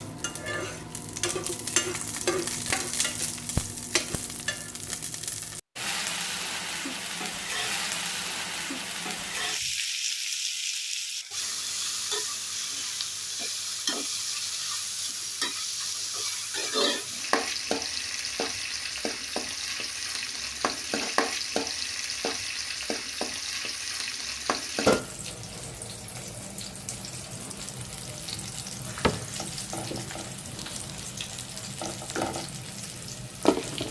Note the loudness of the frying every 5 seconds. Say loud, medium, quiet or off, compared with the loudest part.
loud, loud, loud, loud, loud, medium, loud.